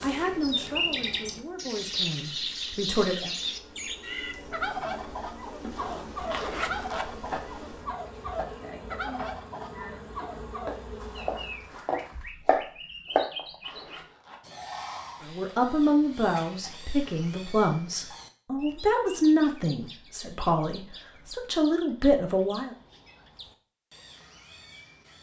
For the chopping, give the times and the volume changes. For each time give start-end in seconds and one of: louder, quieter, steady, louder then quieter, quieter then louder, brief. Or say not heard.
5.8-13.4 louder.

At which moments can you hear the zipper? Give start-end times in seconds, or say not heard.
6.3-7.1, 13.6-14.4.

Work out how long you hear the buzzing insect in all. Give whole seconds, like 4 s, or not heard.
12 s.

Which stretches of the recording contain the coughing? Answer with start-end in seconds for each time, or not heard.
not heard.